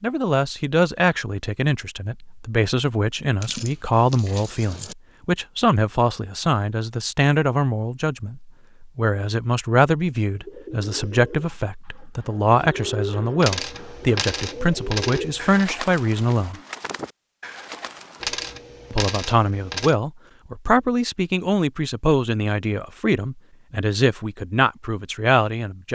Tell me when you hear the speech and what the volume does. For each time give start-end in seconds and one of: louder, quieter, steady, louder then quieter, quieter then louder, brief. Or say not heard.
0.0-16.6 steady
18.9-25.9 steady.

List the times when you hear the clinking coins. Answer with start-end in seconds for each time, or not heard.
3.4-5.0, 13.4-15.7, 18.2-19.9.